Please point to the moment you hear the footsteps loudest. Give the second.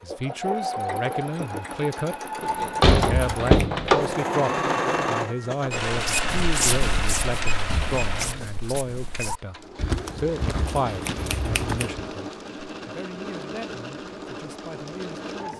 7 s.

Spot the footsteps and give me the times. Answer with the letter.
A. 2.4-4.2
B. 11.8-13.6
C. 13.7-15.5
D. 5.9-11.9
D.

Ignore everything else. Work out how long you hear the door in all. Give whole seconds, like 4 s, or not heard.
2 s.